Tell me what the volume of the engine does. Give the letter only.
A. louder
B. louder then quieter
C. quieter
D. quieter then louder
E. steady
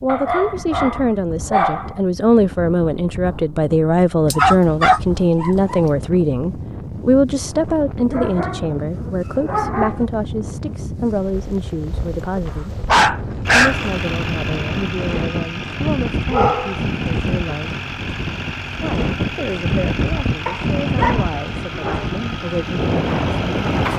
E.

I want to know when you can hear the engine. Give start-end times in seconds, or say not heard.
13.4-23.9.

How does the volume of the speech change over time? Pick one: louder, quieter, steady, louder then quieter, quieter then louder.
quieter.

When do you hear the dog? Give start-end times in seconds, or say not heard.
0.1-1.9, 4.3-5.8, 8.1-10.0, 12.4-13.8, 16.3-16.8, 20.4-22.1.